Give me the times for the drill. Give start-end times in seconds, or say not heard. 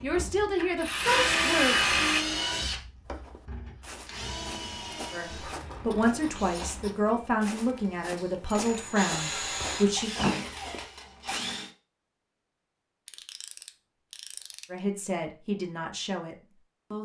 0.0-11.7.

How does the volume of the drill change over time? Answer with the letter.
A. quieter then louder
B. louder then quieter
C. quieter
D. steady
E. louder
A.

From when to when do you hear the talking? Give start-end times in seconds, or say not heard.
0.0-1.8, 5.1-10.1, 14.7-17.0.